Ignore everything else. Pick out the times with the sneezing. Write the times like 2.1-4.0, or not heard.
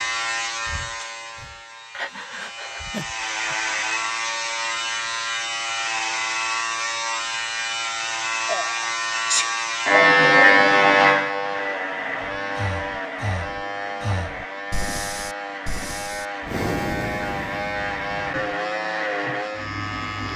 8.4-9.5.